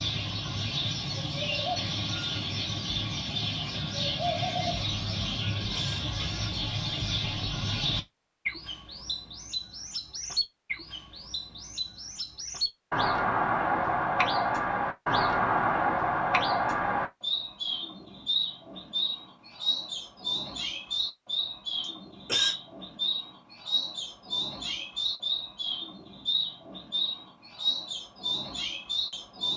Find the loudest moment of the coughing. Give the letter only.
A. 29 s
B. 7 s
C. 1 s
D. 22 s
D.